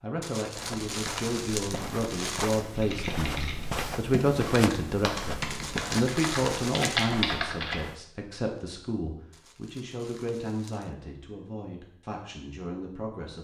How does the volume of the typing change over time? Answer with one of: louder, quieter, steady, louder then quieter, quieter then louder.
louder.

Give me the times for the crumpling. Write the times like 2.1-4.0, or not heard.
0.2-2.6, 5.5-7.2, 9.3-10.9.